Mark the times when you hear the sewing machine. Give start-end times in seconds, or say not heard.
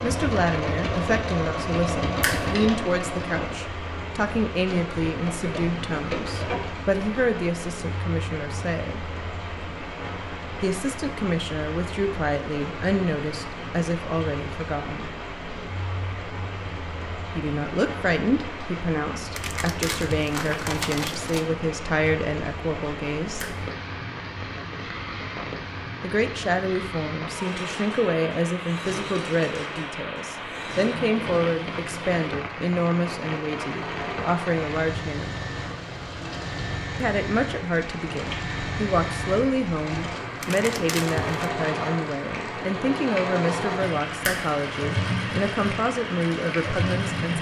0.0-6.8, 27.3-47.3.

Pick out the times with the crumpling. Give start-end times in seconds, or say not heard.
19.3-21.4, 40.4-41.5.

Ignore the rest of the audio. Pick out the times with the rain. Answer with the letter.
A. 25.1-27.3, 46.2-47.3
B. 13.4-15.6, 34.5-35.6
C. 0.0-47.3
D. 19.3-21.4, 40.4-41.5
C.